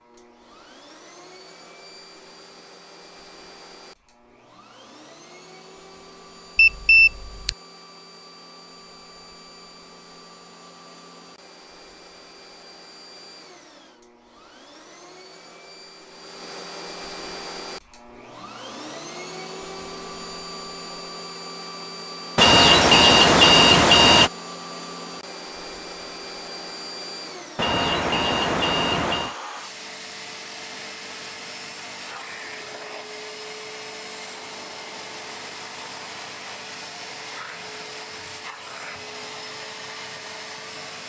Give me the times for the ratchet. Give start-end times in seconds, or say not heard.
not heard.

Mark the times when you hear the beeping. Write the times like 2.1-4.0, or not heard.
6.5-7.5, 22.4-24.3, 27.6-29.4.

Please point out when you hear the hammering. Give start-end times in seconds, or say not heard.
not heard.